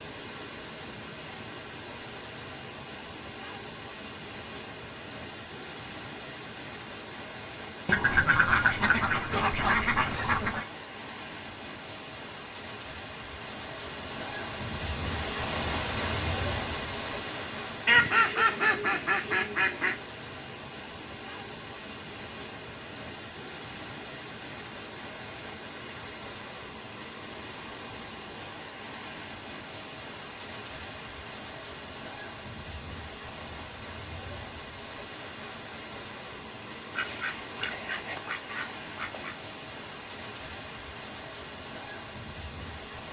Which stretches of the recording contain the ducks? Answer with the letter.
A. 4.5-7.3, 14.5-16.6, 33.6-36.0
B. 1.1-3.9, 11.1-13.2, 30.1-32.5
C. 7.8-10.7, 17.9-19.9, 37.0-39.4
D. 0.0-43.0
C.